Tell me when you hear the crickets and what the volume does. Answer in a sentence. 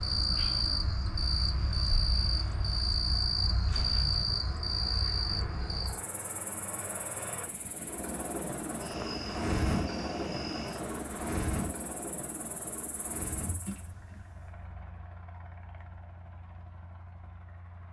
You can hear the crickets from 0.0 to 13.7 s, getting quieter.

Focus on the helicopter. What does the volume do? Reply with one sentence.
The loudness of the helicopter goes up, then down.